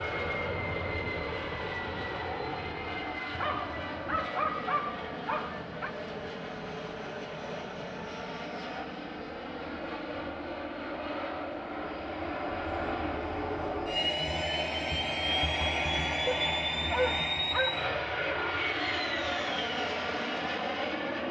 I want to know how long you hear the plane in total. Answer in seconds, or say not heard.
21 s.